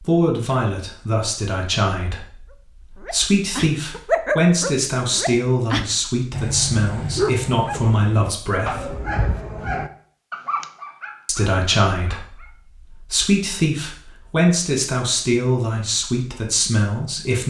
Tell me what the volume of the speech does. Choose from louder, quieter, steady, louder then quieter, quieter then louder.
steady.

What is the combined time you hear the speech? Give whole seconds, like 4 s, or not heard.
15 s.